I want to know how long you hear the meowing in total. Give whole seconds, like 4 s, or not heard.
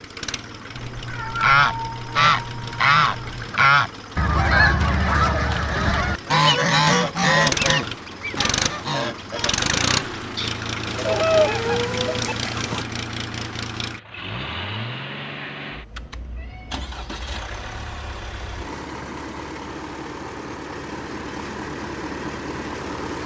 6 s.